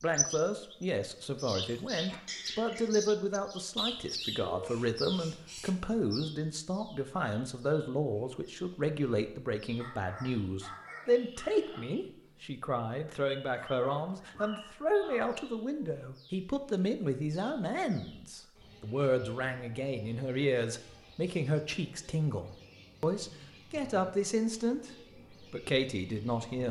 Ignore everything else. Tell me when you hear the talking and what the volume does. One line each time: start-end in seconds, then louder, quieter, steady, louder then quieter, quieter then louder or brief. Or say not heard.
0.0-26.6 steady.